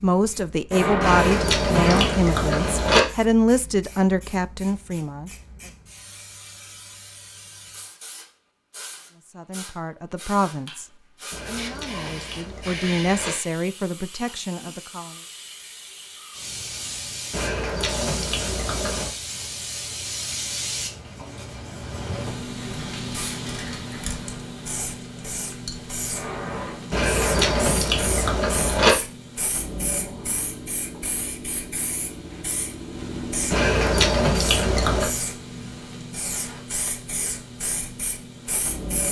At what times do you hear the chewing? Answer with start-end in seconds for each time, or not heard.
1.0-3.0, 11.3-13.3, 17.3-19.1, 26.9-28.9, 33.5-35.1.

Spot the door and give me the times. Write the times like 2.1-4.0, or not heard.
0.7-2.1, 26.1-27.8.